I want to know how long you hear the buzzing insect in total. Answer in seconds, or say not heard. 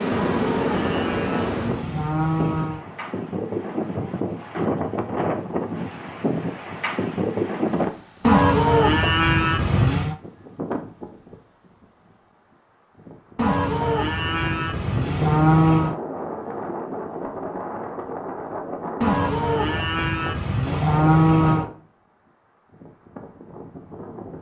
2 s.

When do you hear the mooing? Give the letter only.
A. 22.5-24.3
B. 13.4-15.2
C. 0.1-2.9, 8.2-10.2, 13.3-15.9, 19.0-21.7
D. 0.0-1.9
C.